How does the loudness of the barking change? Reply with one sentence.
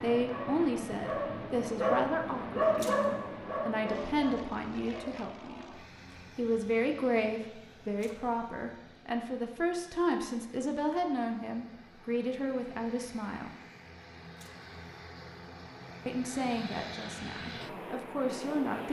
The loudness of the barking goes up, then down.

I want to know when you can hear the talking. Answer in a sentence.
You can hear the talking from 0.0 to 13.5 s and from 16.1 to 18.8 s.